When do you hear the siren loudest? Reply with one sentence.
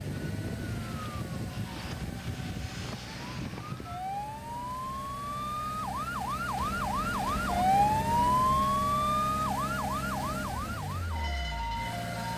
The loudest moment of the siren is at 8 seconds.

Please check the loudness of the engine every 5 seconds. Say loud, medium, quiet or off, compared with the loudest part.
medium, loud, loud.